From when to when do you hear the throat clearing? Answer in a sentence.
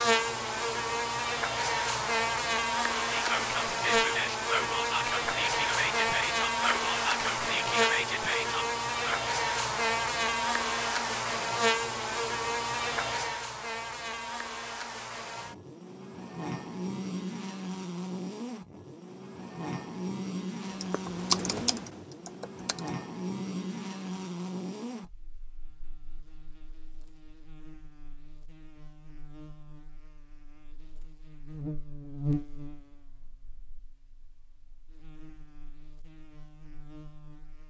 You can't hear the throat clearing here.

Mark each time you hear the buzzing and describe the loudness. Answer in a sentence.
You can hear the buzzing from 0.0 to 37.6 s, getting quieter.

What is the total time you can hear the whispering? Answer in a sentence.
You can hear the whispering for 6 seconds altogether.